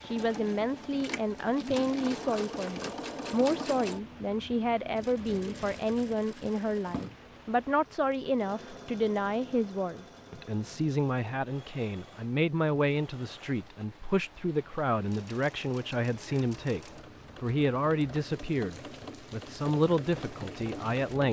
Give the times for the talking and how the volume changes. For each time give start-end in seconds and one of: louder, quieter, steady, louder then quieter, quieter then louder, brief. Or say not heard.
0.0-21.2 steady.